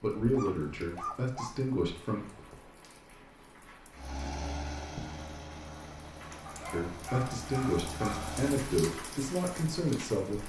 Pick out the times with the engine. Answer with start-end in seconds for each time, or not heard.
3.9-8.7.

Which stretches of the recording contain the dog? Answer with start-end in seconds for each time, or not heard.
0.1-1.6, 6.5-8.4.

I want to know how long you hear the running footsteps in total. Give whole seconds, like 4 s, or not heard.
not heard.